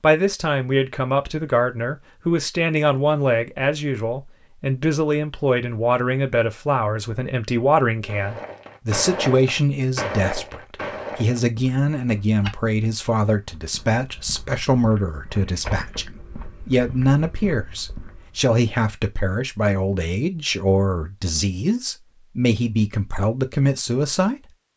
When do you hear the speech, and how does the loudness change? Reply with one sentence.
The speech can be heard from 0.0 to 24.4 s, at a steady volume.